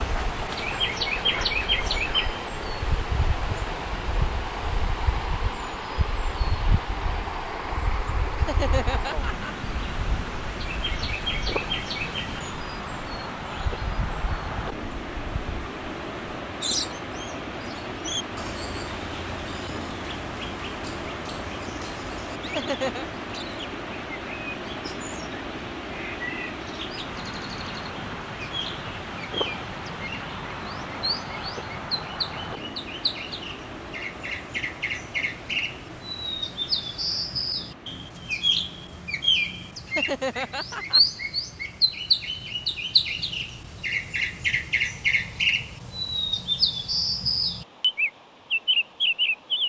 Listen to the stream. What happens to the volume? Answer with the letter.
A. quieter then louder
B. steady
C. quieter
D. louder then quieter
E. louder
C.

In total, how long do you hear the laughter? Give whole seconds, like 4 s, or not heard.
3 s.